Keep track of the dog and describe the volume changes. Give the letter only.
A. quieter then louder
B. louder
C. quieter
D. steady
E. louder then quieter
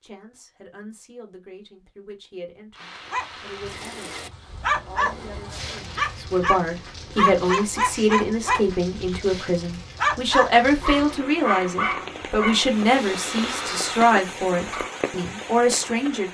C.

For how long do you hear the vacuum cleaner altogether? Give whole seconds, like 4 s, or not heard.
not heard.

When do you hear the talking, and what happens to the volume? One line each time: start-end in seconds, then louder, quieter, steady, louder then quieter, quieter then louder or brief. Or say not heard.
0.0-16.2 louder.